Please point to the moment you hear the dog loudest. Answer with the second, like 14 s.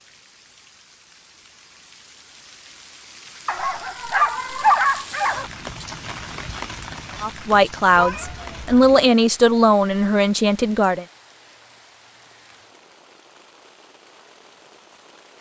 5 s.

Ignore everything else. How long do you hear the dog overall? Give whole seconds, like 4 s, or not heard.
2 s.